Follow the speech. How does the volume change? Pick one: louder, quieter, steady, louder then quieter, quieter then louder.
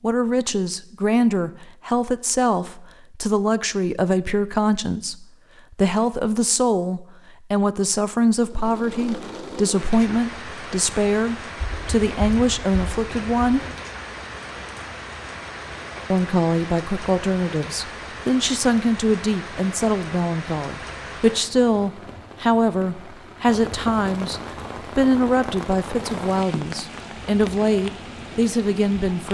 steady.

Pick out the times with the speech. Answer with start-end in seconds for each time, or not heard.
0.0-13.7, 16.1-29.2.